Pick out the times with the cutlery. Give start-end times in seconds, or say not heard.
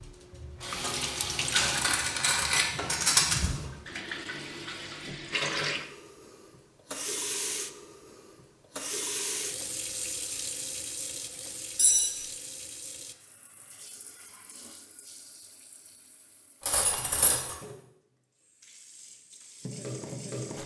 1.5-3.5, 11.8-12.2, 16.6-17.6.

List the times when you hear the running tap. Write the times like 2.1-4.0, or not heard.
0.0-20.6.